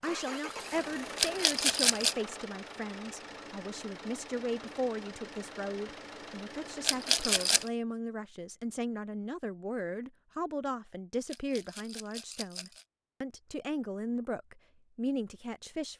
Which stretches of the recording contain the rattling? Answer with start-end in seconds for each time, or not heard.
1.1-2.1, 6.8-7.7, 11.2-12.8.